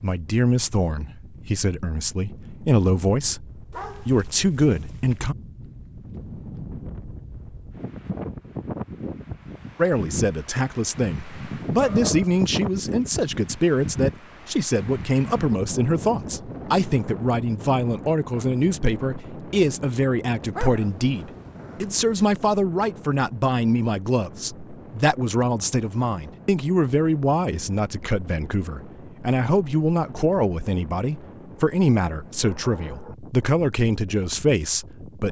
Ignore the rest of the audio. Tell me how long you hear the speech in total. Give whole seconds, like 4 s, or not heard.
31 s.